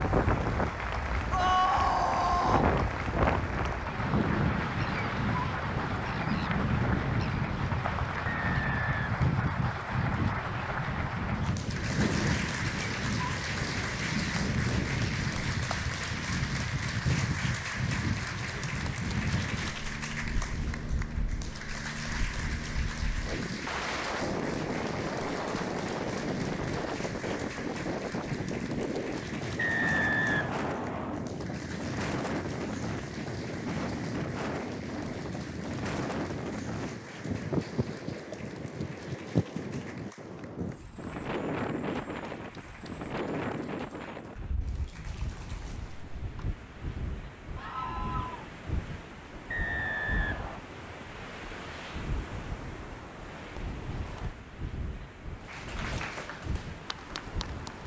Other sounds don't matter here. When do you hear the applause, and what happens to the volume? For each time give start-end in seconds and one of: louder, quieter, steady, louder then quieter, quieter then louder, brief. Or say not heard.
0.0-46.2 quieter
55.4-57.8 brief.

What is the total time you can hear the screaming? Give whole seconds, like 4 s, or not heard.
2 s.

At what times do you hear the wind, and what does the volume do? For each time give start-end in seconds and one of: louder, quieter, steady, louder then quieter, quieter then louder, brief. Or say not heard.
0.0-57.8 quieter.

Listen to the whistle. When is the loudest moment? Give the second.
30 s.